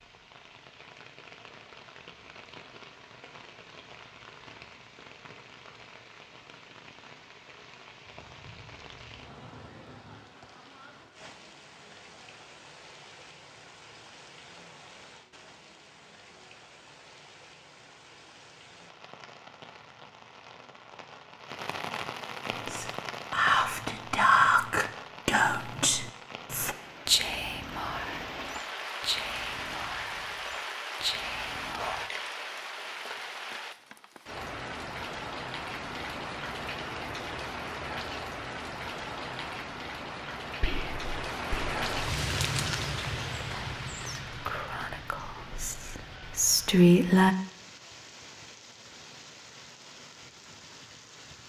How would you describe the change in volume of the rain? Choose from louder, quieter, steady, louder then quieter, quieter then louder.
louder.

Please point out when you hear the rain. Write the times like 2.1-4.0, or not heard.
0.0-51.4.